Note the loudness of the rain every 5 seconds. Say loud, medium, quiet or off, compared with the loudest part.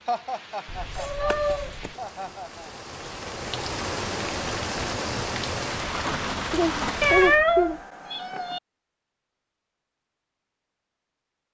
medium, loud, off.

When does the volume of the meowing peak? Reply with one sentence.
The volume of the meowing peaks at 7 seconds.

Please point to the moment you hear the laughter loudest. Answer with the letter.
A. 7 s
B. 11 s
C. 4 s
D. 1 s
A.